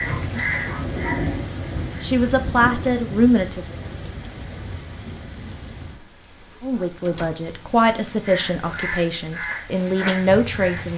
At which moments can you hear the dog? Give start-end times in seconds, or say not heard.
0.0-1.4.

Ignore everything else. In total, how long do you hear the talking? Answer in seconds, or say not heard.
6 s.